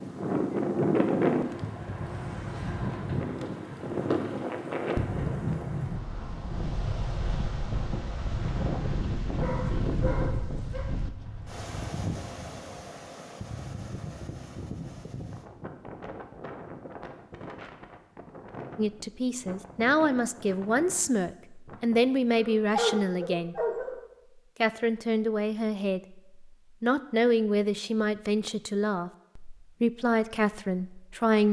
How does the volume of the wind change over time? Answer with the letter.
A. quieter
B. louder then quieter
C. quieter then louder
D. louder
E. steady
A.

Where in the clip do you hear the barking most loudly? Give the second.
23 s.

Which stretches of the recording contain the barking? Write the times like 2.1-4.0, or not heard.
9.4-10.9, 22.4-23.9.